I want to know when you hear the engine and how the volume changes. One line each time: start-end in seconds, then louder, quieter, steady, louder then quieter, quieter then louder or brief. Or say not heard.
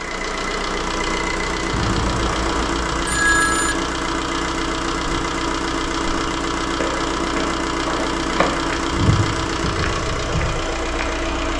0.0-11.5 steady.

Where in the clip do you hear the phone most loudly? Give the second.
3 s.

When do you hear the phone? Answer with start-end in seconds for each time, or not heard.
1.7-3.8.